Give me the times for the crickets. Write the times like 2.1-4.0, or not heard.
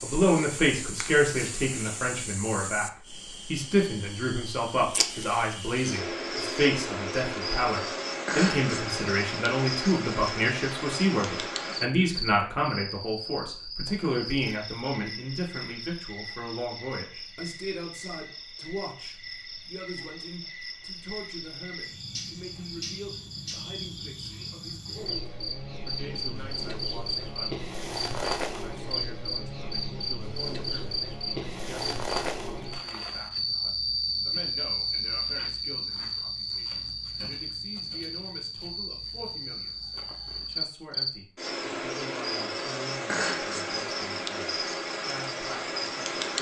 0.0-46.3.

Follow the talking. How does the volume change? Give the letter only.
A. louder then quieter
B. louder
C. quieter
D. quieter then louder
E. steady
C.